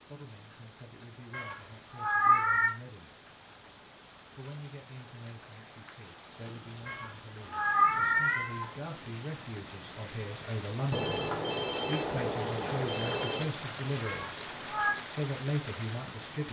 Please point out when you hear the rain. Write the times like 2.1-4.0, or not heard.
0.0-16.4.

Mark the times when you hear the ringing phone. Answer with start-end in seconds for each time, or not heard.
10.9-13.5.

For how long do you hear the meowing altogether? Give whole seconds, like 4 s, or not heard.
4 s.